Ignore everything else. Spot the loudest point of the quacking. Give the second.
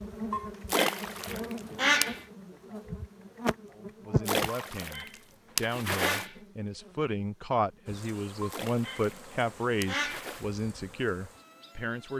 2 s.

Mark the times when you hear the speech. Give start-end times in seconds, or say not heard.
3.7-12.1.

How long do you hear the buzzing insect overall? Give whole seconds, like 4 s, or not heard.
12 s.